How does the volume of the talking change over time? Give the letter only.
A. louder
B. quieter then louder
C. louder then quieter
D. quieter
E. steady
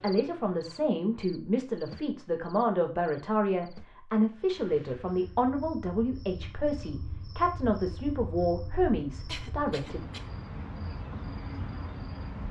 E.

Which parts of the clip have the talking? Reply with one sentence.
You can hear the talking from 0.0 to 10.0 s.